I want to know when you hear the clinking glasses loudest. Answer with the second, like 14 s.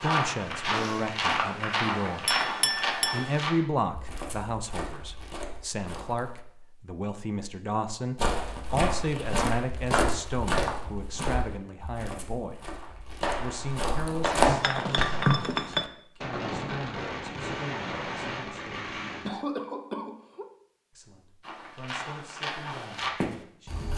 15 s.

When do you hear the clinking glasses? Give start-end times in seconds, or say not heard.
2.2-3.3, 14.2-15.8.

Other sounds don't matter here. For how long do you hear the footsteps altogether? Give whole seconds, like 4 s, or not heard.
15 s.